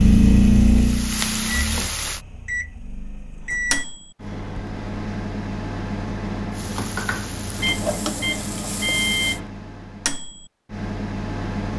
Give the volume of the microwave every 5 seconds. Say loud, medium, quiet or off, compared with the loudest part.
loud, medium, medium.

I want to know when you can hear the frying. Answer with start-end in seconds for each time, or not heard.
0.0-2.2, 6.5-9.4.